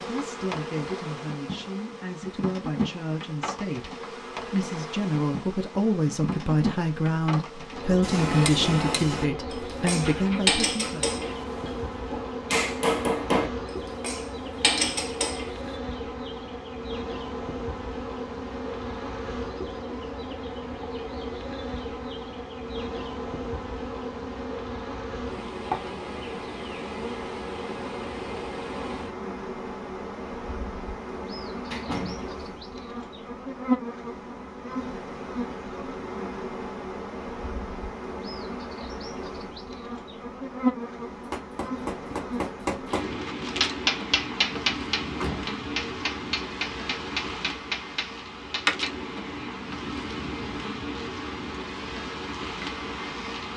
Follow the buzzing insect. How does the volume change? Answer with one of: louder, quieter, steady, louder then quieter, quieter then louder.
steady.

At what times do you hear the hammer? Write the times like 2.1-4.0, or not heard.
8.0-15.8, 41.1-48.9.